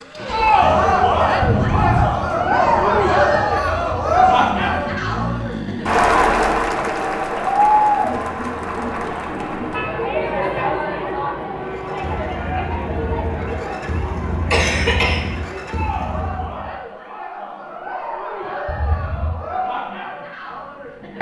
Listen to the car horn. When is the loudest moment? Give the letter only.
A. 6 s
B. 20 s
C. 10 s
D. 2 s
D.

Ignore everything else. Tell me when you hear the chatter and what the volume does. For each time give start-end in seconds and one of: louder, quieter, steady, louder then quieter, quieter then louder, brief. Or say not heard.
0.1-21.1 quieter.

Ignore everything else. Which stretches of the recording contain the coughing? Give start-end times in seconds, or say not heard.
14.5-15.2.